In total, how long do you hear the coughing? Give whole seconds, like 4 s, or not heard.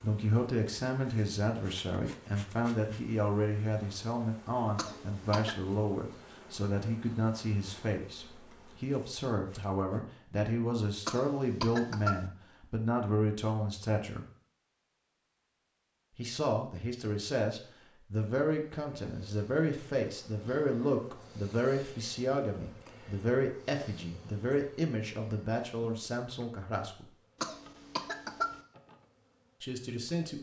3 s.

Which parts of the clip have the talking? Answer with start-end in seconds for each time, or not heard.
0.0-14.2, 16.1-27.1, 29.6-30.3.